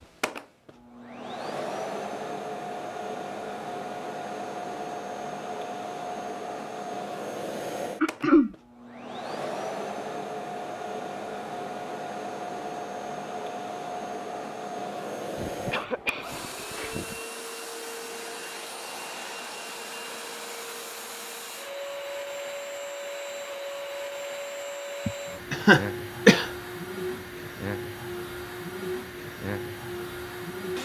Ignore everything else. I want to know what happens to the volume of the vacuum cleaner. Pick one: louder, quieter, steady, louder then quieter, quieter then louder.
steady.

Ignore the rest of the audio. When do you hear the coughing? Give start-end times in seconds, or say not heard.
8.0-8.6, 15.3-17.1, 25.1-26.5.